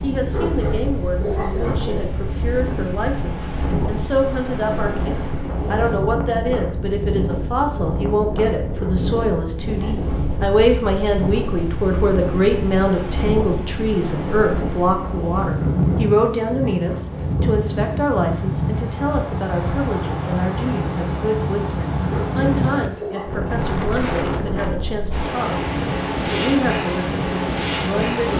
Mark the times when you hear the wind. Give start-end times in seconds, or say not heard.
0.0-28.3.